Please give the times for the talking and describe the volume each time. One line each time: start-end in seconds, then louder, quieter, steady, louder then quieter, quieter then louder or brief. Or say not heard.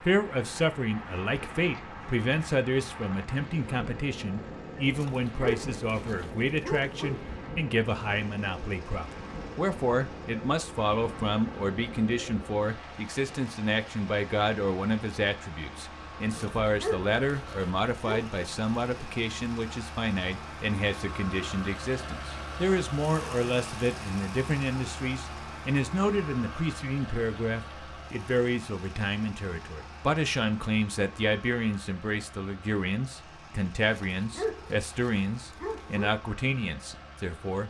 0.0-37.6 steady.